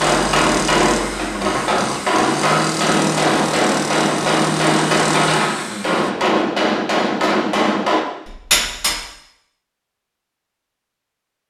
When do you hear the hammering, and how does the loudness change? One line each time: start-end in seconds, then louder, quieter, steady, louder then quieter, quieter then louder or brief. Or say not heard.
0.0-9.0 steady.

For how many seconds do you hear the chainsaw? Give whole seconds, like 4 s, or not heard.
6 s.